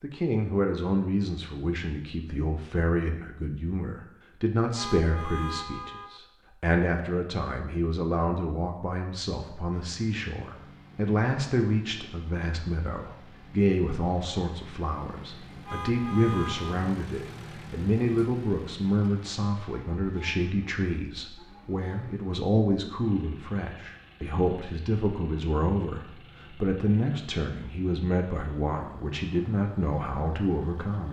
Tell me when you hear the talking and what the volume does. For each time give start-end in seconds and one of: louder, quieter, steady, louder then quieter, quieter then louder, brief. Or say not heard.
0.0-31.0 steady.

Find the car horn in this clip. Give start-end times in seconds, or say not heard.
4.8-6.2, 15.7-16.8.